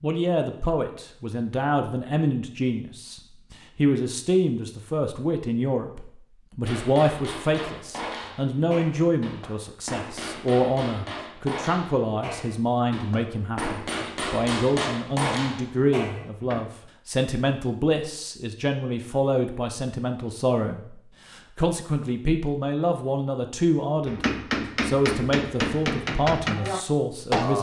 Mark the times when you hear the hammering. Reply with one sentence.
You can hear the hammering from 6.7 to 16.6 s and from 24.1 to 27.5 s.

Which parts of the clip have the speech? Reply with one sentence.
The speech can be heard from 0.0 to 27.5 s.